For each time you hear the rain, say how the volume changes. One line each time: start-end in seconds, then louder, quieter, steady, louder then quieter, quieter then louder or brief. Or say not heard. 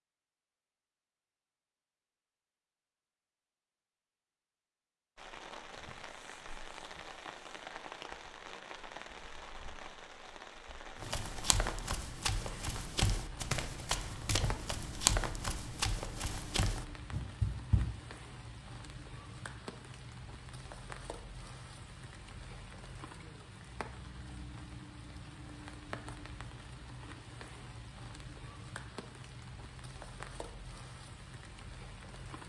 5.2-32.4 steady.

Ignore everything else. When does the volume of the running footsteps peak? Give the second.
15 s.